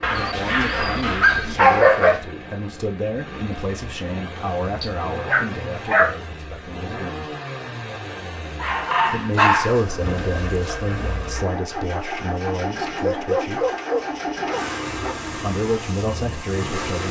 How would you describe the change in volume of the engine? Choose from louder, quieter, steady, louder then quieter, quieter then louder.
louder.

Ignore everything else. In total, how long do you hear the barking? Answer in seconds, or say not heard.
8 s.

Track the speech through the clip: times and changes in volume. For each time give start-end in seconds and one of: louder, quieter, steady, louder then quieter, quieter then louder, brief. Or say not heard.
0.1-7.3 quieter
9.1-13.7 quieter
15.3-17.0 brief.